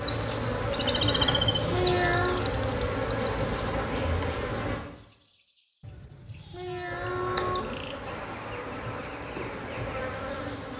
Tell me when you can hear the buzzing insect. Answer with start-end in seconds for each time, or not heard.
0.0-4.8, 6.8-10.7.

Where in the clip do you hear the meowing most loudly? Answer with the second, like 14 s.
2 s.